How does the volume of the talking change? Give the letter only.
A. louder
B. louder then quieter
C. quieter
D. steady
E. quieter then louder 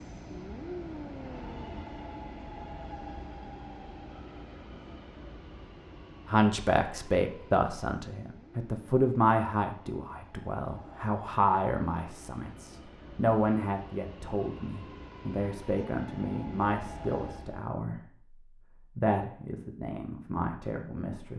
C.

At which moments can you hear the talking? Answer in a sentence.
You can hear the talking from 6.2 to 21.3 s.